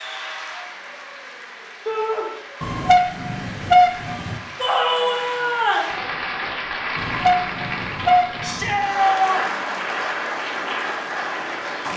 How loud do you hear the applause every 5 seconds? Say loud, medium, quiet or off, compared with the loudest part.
medium, loud, loud.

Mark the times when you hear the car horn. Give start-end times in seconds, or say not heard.
2.6-4.4, 7.0-8.8.